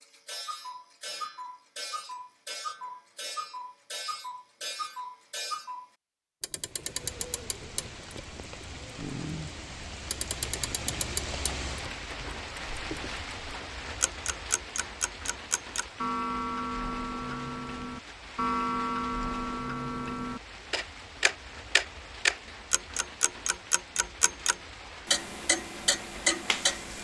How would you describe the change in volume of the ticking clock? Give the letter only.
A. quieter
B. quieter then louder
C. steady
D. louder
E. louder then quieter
D.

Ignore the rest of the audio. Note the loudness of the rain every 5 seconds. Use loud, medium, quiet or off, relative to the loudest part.
off, loud, loud, medium, medium, medium.